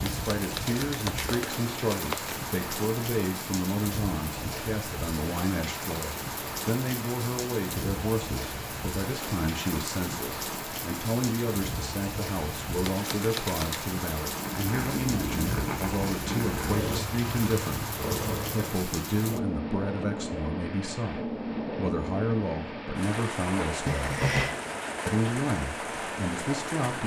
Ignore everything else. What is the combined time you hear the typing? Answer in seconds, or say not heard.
not heard.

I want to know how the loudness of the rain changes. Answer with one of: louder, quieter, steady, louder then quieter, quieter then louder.
steady.